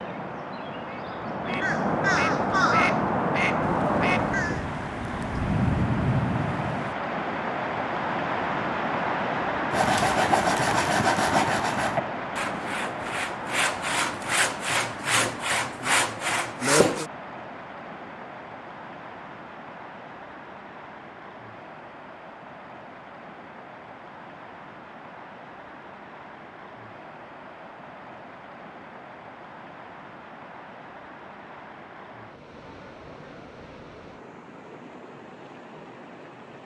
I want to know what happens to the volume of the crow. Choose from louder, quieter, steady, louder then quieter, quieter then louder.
louder.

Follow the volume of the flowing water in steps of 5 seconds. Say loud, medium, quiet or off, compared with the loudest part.
medium, loud, loud, medium, quiet, quiet, quiet, quiet.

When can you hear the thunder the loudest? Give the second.
6 s.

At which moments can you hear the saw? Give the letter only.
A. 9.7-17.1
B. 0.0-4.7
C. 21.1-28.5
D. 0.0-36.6
A.